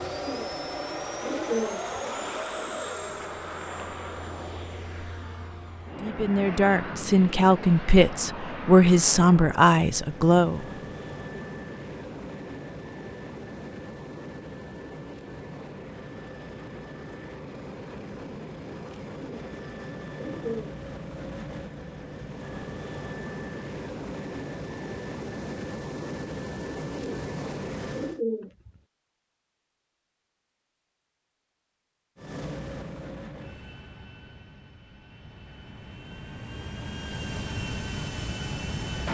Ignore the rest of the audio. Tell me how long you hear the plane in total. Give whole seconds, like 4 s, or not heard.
35 s.